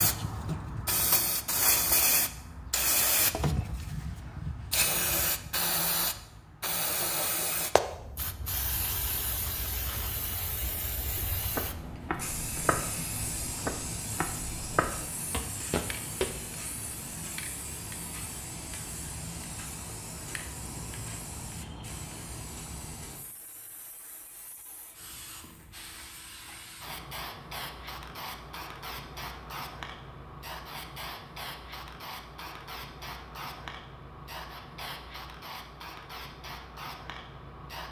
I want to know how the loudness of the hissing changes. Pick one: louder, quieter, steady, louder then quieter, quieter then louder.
quieter.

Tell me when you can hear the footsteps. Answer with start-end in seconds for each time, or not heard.
11.3-16.4.